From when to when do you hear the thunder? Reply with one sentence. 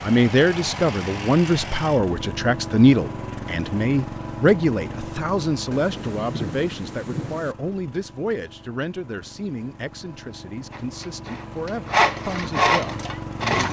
The thunder can be heard from 5.7 to 7.5 s.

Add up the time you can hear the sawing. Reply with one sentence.
You can hear the sawing for 3 seconds altogether.